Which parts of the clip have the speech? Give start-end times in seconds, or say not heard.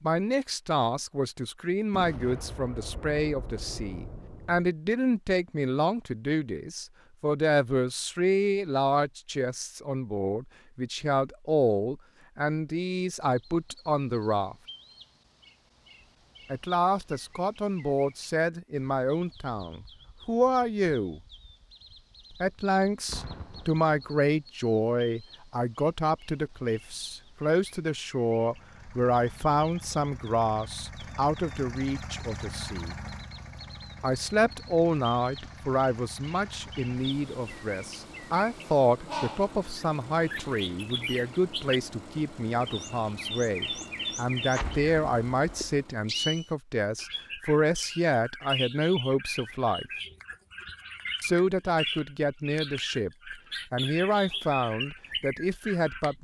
0.0-14.6, 16.5-21.2, 22.4-33.0, 34.0-49.9, 51.2-56.1.